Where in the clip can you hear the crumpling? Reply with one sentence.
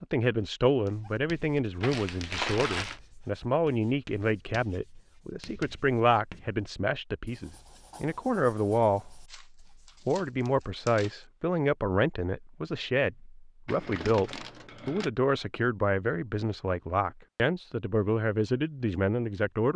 You can hear the crumpling from 1.8 to 3.0 s, from 9.2 to 11.2 s and from 13.7 to 15.1 s.